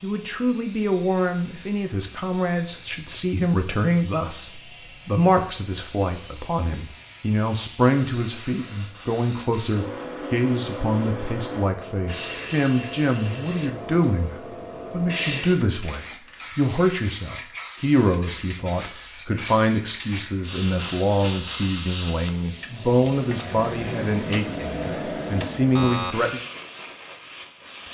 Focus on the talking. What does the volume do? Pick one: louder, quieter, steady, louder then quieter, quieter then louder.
steady.